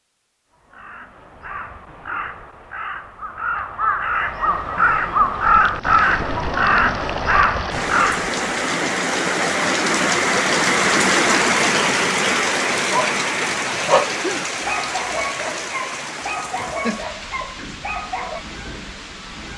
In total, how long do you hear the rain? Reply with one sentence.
You can hear the rain for 14 seconds altogether.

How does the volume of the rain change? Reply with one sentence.
The volume of the rain goes up, then down.